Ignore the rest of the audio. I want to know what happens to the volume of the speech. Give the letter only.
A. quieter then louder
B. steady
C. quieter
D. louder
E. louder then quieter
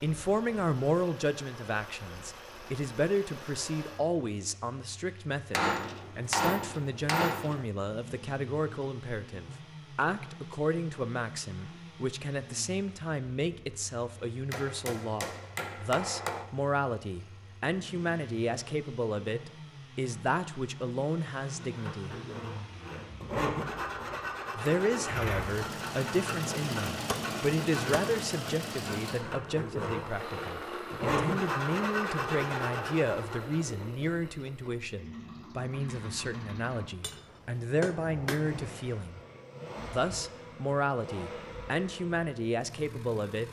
B.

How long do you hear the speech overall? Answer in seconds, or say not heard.
40 s.